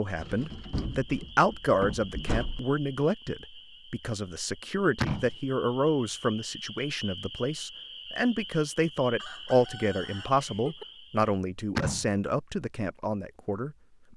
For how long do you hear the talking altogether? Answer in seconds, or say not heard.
14 s.